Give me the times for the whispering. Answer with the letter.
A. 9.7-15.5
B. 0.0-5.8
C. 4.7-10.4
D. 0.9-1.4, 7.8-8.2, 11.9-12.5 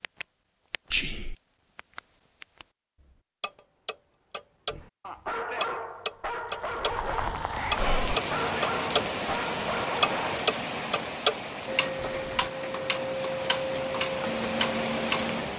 D.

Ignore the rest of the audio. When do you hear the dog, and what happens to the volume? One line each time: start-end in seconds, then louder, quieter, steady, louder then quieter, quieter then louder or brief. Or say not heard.
4.7-10.4 steady.